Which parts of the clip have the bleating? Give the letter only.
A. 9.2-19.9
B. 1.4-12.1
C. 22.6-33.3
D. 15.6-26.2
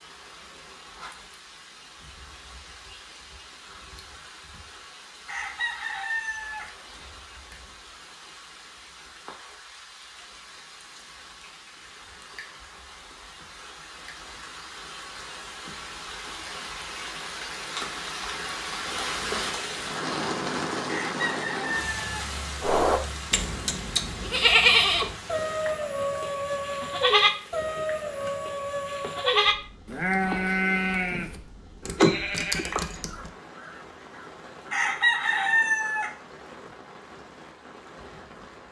C.